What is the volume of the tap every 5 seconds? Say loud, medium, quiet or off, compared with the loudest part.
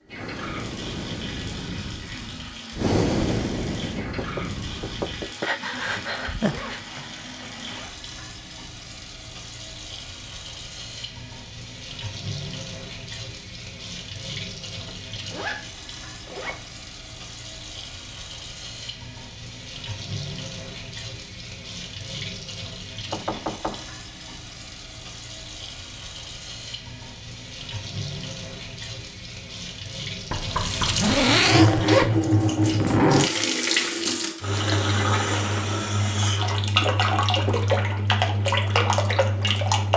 quiet, quiet, quiet, quiet, quiet, quiet, loud, loud.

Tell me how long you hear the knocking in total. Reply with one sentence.
You can hear the knocking for 3 seconds altogether.